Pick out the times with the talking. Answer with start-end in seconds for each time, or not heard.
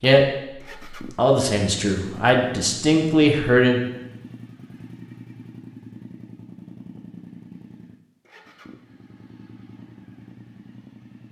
0.0-3.8.